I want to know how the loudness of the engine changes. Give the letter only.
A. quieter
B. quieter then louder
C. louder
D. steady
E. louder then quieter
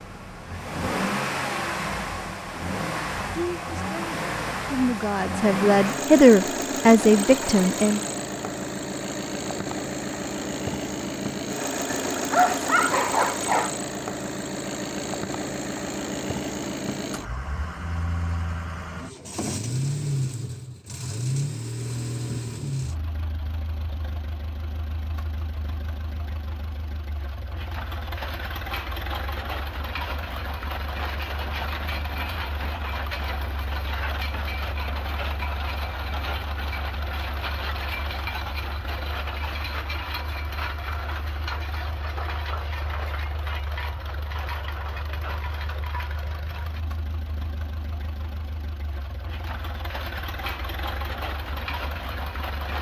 A.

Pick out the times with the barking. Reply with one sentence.
The barking can be heard from 11.9 to 13.8 s.